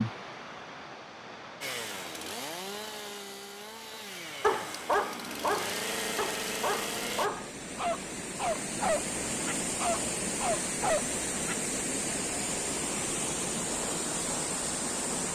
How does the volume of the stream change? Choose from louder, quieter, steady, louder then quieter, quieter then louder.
louder.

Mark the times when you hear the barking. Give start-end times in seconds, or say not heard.
4.4-11.6.